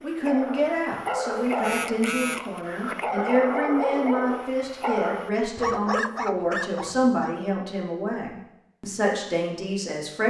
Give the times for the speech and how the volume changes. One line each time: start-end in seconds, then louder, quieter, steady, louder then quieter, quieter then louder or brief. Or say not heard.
0.0-10.2 steady.